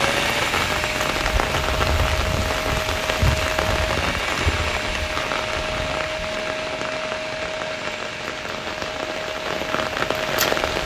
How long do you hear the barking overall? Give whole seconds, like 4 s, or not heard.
not heard.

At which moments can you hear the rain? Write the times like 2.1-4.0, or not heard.
0.0-10.8.